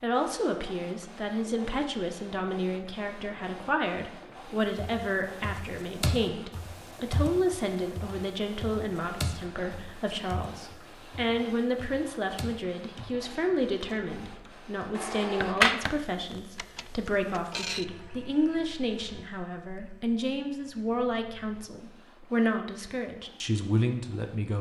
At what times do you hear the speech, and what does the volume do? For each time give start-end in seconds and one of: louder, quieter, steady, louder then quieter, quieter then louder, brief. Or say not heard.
0.0-24.5 steady.